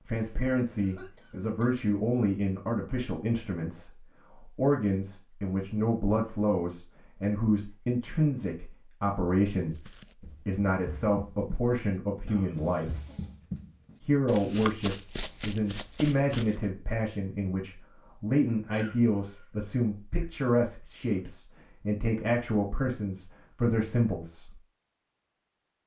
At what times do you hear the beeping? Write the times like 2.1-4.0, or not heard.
not heard.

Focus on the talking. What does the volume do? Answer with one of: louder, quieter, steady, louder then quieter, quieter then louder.
steady.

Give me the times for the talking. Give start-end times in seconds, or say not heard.
0.1-13.0, 14.0-24.6.